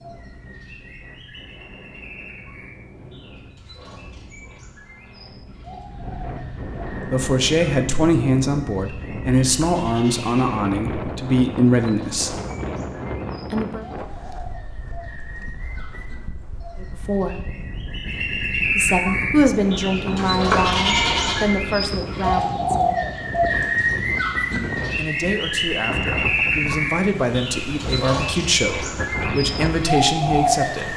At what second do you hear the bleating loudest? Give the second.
21 s.